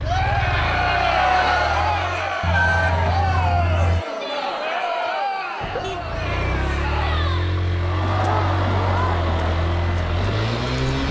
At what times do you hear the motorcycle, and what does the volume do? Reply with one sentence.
You can hear the motorcycle briefly from 0.0 to 2.4 s; and from 6.0 to 11.0 s, at a steady volume.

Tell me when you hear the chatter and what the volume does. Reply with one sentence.
You can hear the chatter from 0.0 to 10.8 s, getting quieter.